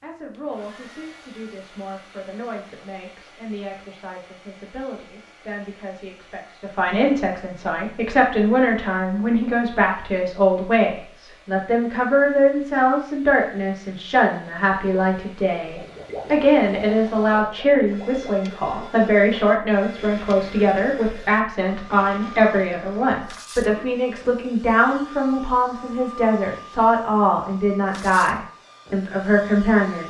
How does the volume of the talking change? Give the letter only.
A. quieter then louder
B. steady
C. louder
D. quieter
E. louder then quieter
C.